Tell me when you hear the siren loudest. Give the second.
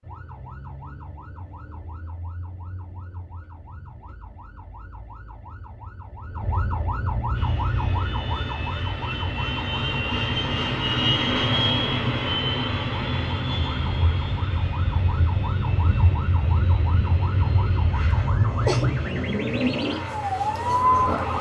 21 s.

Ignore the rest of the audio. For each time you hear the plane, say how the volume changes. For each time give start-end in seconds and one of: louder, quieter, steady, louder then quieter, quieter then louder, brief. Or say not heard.
7.3-21.3 louder then quieter.